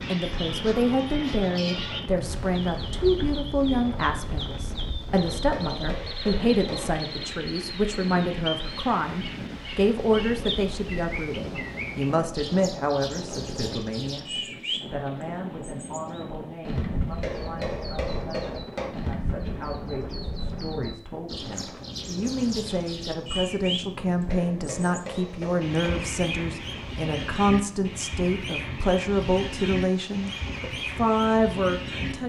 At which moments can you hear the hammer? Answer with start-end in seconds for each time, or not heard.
5.1-7.0, 17.2-18.9, 24.3-26.1.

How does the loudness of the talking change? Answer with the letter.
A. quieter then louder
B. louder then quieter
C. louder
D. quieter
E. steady
A.